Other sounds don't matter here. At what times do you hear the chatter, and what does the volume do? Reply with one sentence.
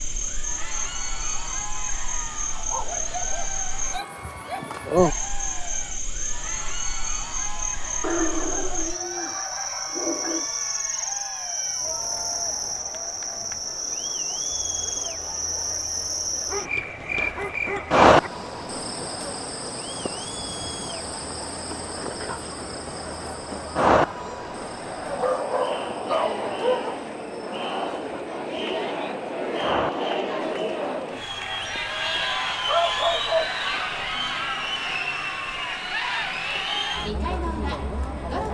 You can hear the chatter from 0.1 to 38.4 s, getting louder.